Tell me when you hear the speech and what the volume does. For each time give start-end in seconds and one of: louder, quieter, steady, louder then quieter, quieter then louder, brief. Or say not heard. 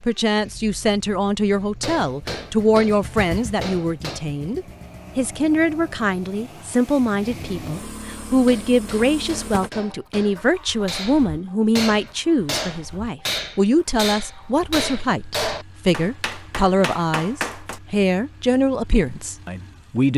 0.0-20.1 steady.